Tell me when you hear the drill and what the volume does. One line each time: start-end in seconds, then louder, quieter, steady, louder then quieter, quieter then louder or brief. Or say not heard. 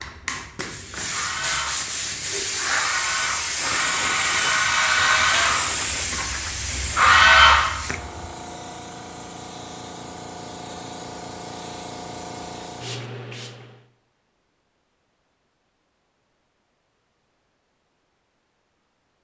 0.0-8.2 louder.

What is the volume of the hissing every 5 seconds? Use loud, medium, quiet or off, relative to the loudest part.
loud, loud, medium, off.